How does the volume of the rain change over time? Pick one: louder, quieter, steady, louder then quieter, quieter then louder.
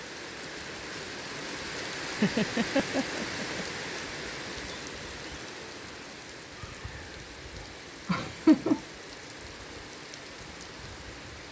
quieter.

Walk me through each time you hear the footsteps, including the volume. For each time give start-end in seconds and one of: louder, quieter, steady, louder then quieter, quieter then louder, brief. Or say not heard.
not heard.